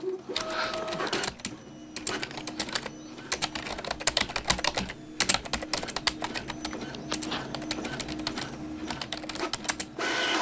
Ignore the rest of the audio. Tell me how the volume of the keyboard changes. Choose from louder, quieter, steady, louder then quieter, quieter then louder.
louder then quieter.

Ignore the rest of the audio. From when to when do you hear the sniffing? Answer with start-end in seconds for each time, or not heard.
0.4-1.1, 6.7-7.5.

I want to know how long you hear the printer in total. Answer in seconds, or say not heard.
10 s.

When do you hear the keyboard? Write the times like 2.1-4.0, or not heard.
0.3-9.9.